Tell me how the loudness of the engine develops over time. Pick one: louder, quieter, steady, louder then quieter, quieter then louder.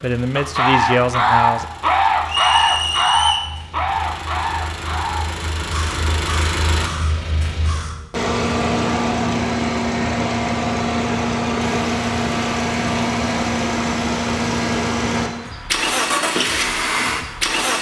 louder.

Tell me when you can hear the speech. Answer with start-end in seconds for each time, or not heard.
0.0-1.6.